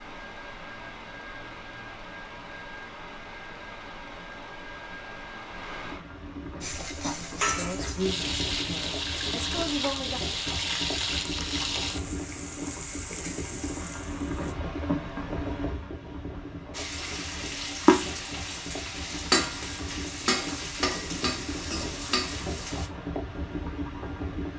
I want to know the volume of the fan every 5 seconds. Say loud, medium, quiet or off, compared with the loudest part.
medium, loud, loud, loud, loud.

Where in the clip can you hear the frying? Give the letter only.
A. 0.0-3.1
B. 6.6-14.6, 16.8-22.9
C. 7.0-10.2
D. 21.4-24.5
B.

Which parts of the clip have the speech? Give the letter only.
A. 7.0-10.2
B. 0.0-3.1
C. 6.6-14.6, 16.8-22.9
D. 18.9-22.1
A.